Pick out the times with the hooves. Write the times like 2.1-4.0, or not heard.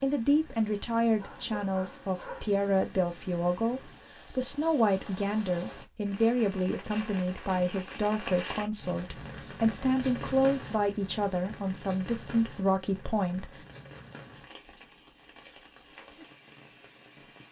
not heard.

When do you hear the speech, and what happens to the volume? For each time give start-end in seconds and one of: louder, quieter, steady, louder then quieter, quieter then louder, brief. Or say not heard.
0.0-13.6 steady.